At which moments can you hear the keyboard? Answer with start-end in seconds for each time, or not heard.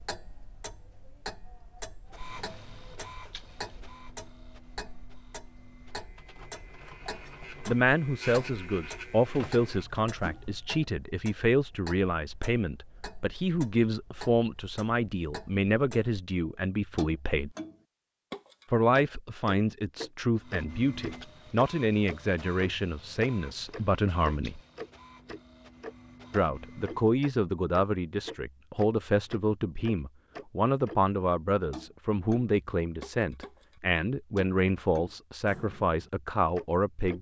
not heard.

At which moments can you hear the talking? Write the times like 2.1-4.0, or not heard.
7.7-17.6, 18.7-24.6, 26.3-37.1.